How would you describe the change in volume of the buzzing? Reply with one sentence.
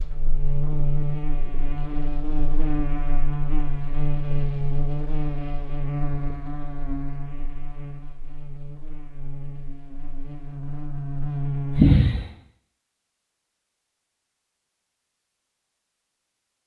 The volume of the buzzing goes down, then up.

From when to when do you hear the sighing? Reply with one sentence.
You can hear the sighing from 11.8 to 12.2 s.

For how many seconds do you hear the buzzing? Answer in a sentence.
You can hear the buzzing for 12 seconds altogether.